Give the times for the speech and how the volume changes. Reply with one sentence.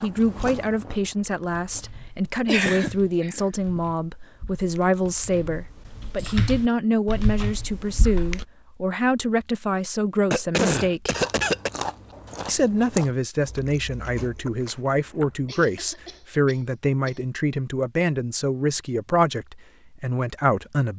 You can hear the speech from 0.0 to 11.2 s, at a steady volume; and from 12.4 to 20.9 s, at a steady volume.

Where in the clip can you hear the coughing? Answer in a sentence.
The coughing can be heard from 2.5 to 3.8 s, from 10.3 to 11.7 s and from 15.4 to 17.2 s.